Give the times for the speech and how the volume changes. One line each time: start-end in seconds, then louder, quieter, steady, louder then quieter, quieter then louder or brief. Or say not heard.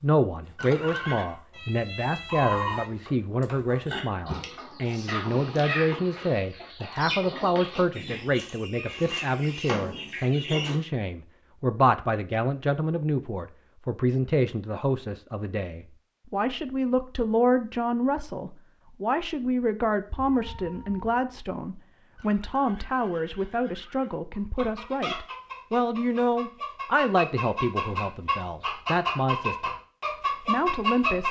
0.0-29.7 steady
30.4-31.2 brief.